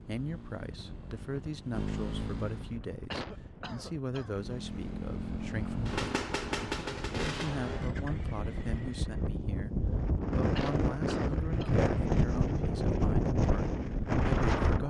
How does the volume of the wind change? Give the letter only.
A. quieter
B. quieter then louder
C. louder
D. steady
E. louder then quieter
C.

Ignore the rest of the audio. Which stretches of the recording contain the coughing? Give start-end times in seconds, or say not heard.
3.1-4.5, 10.6-11.8.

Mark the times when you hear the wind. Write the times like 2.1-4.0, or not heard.
0.0-14.8.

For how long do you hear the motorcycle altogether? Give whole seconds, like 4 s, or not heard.
8 s.